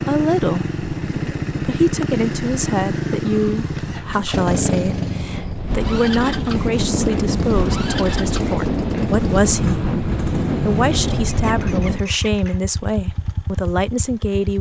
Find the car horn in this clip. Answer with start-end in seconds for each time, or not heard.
not heard.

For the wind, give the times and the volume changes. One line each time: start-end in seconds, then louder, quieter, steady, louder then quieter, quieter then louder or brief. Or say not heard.
0.0-12.0 louder.